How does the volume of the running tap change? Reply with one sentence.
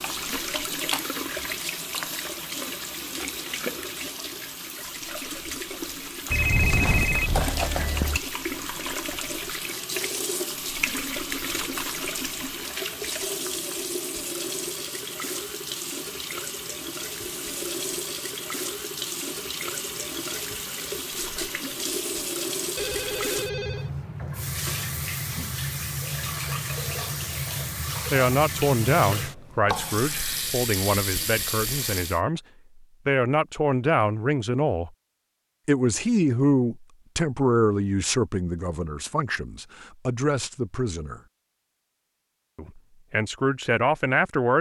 The volume of the running tap stays about the same.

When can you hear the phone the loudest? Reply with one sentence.
The loudest moment of the phone is at 7 seconds.